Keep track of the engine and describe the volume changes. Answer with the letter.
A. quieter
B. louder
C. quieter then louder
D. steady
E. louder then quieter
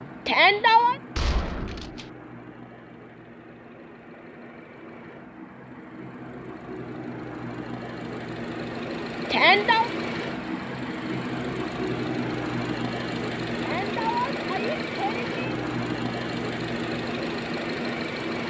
B.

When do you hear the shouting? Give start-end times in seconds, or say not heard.
0.2-0.9, 9.3-9.9, 13.6-15.6.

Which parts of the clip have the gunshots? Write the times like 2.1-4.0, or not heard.
1.1-2.0.